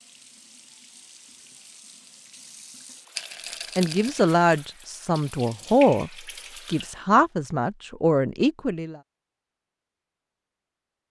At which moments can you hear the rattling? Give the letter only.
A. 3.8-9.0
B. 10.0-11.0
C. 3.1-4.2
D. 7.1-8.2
C.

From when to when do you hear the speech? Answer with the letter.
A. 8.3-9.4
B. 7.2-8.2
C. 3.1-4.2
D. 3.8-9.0
D.